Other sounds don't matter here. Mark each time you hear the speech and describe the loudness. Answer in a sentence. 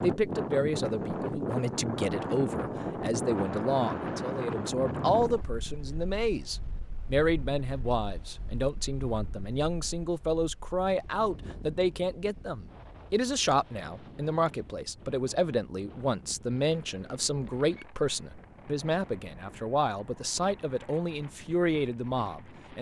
The speech can be heard from 0.0 to 22.7 s, at a steady volume.